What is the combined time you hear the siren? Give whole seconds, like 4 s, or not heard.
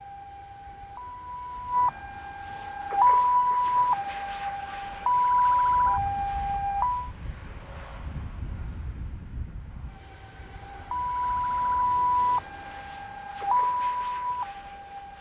12 s.